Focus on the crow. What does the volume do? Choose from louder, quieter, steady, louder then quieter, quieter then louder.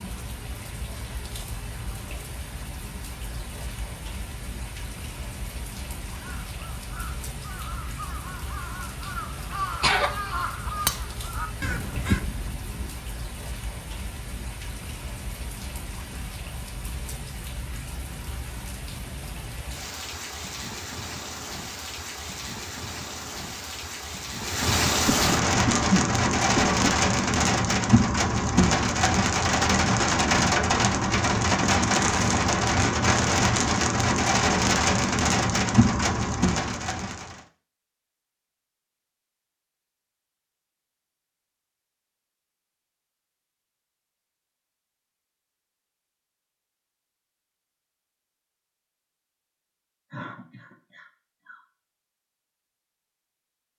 louder.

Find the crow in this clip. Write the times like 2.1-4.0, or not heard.
6.2-12.9.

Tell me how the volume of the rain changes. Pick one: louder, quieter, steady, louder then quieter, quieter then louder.
louder.